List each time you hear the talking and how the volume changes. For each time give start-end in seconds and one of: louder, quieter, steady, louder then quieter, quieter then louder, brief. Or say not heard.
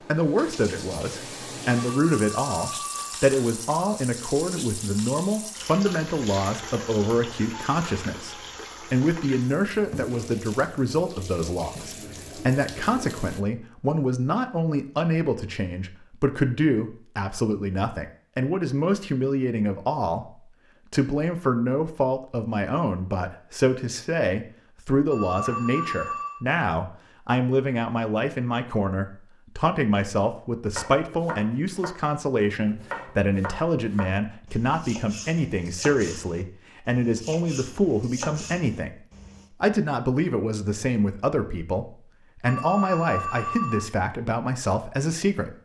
0.1-45.5 steady.